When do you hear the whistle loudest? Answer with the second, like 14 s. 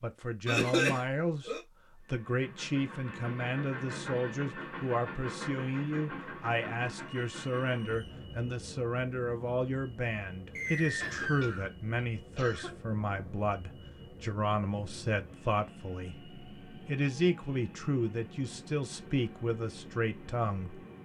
11 s.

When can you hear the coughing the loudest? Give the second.
1 s.